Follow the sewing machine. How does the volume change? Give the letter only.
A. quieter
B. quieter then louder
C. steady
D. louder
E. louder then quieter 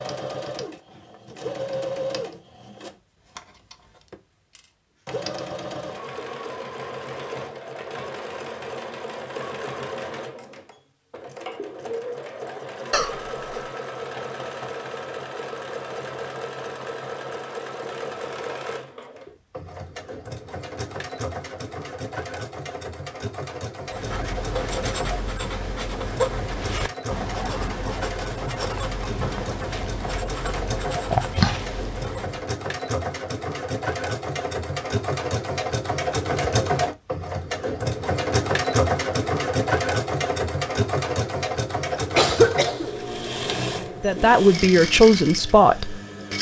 D.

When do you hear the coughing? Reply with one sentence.
The coughing can be heard from 12.9 to 13.3 s and from 42.1 to 43.0 s.